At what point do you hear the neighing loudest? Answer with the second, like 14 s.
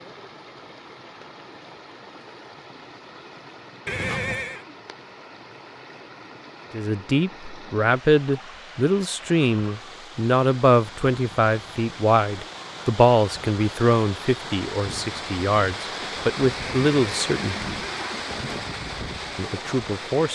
4 s.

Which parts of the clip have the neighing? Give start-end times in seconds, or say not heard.
3.9-4.7, 16.6-18.6.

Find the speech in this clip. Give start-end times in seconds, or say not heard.
6.7-17.8, 19.4-20.3.